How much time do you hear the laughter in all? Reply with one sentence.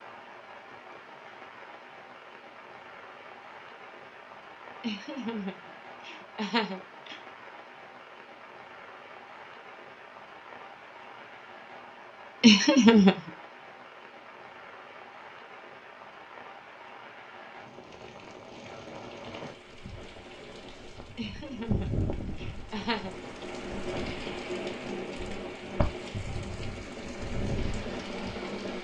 The laughter can be heard for 5 seconds in total.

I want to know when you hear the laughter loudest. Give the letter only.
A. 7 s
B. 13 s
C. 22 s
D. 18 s
B.